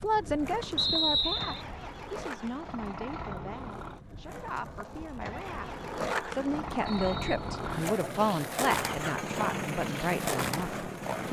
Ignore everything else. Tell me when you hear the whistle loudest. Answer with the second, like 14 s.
1 s.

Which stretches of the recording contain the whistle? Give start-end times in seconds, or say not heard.
0.8-1.6, 6.8-7.9.